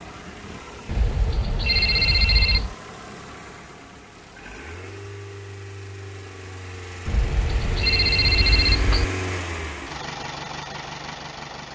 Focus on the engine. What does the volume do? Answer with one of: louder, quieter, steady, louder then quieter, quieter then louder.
louder.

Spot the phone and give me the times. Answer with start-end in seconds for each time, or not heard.
0.8-2.8, 7.0-9.1.